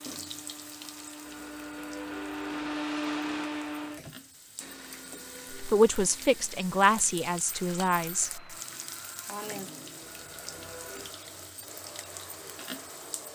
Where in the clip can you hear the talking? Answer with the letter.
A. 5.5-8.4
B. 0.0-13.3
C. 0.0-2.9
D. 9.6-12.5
A.